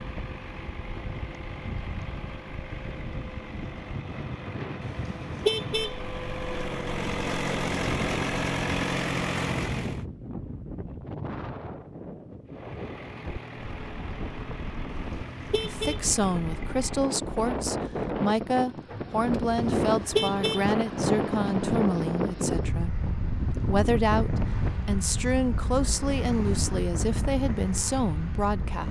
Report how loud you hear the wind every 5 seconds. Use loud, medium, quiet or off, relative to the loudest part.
medium, medium, medium, loud, loud, medium.